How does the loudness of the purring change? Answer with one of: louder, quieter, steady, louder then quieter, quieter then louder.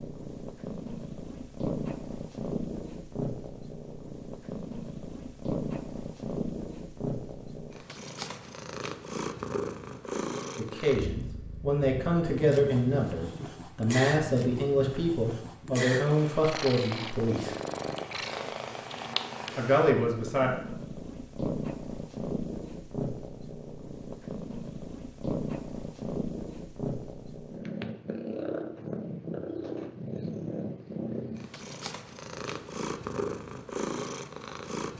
steady.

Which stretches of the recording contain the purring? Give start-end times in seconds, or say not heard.
0.0-34.9.